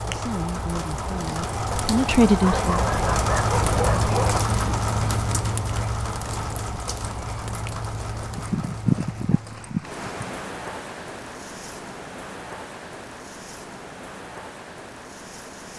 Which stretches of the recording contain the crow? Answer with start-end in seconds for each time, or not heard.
not heard.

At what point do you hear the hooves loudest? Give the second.
9 s.